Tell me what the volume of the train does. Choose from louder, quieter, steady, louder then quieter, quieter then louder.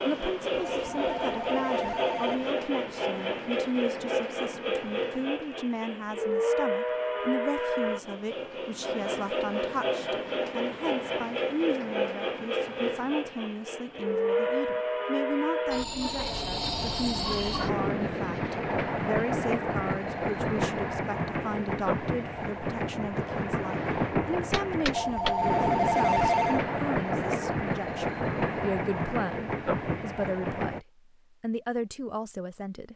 steady.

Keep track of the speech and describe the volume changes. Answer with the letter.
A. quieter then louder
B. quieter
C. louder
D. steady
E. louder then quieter
D.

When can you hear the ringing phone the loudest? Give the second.
26 s.